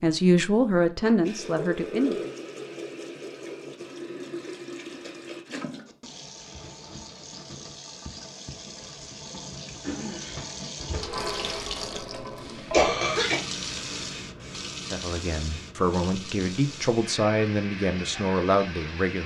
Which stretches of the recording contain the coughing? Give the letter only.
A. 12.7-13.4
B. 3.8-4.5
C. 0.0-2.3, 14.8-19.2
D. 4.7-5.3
A.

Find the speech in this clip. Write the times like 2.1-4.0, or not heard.
0.0-2.3, 14.8-19.2.